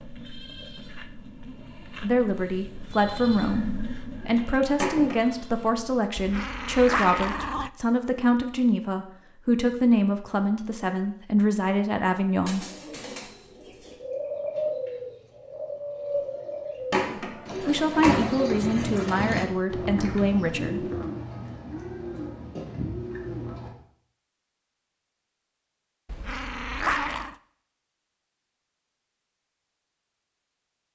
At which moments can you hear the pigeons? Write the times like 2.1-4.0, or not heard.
12.4-23.7.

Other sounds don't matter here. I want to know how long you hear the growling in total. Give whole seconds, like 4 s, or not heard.
3 s.